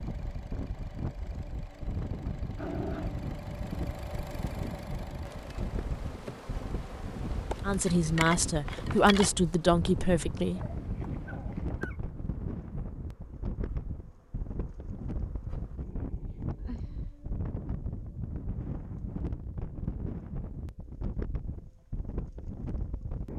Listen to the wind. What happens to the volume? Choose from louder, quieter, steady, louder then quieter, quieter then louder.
steady.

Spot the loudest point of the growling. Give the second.
3 s.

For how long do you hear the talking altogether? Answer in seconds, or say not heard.
3 s.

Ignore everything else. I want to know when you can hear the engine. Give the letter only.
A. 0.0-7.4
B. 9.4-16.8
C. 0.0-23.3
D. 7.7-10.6
A.